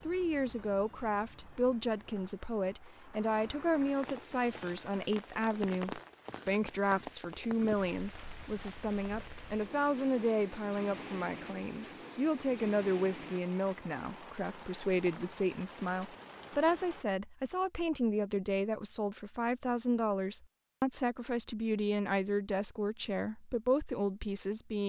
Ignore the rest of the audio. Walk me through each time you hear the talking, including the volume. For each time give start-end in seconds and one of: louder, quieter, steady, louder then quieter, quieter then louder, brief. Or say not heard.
0.0-24.8 steady.